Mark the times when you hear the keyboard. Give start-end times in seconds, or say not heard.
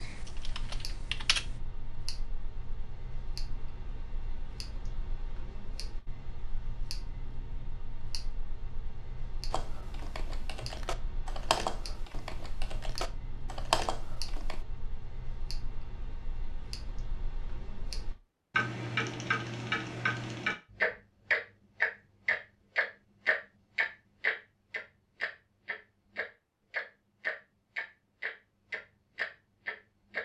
0.0-1.6, 9.5-14.6.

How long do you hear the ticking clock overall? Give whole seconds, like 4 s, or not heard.
30 s.